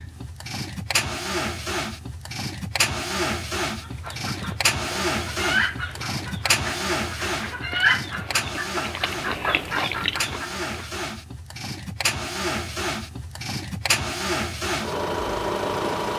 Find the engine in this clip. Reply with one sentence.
The engine can be heard from 0.0 to 16.1 s.